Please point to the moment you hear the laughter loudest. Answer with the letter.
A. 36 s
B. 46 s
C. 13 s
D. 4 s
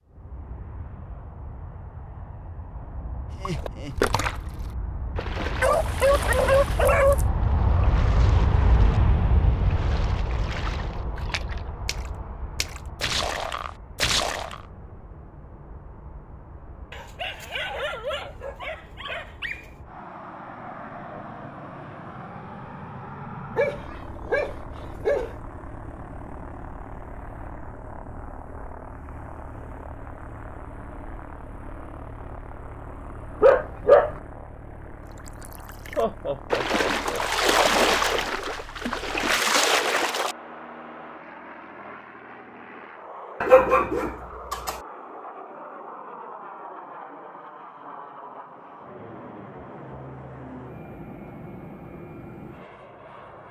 A.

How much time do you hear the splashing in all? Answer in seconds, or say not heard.
16 s.